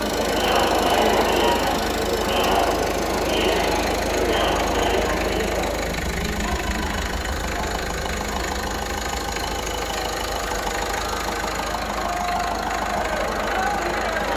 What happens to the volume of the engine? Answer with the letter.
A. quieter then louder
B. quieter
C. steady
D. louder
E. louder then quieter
C.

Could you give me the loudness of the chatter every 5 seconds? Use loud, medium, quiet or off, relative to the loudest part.
loud, medium, medium.